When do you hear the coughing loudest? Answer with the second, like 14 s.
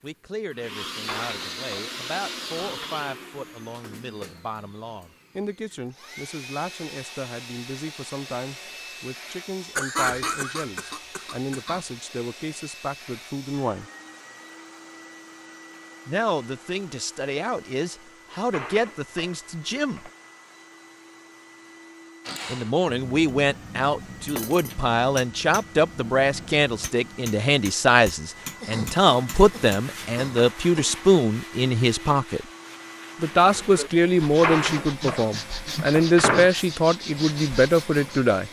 10 s.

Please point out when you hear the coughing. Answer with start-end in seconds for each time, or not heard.
9.8-11.8, 28.6-31.0.